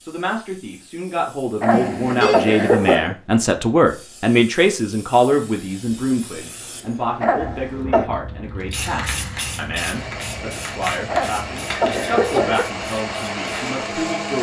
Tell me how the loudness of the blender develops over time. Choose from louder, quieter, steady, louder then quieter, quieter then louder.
louder.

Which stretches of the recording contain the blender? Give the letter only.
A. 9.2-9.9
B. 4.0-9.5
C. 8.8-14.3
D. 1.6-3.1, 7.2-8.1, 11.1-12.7
C.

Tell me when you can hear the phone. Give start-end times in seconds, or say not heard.
1.7-2.5.